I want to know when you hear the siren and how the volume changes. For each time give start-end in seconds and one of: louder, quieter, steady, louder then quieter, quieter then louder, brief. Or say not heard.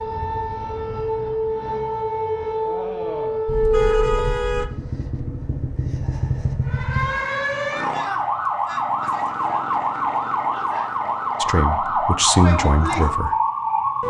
0.0-4.3 louder
6.7-14.0 steady.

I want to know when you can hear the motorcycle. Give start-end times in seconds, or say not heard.
4.5-7.2.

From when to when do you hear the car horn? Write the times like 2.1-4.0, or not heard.
3.5-4.7.